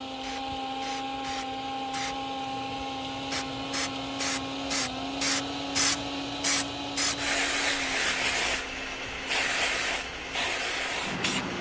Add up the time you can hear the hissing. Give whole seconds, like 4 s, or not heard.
11 s.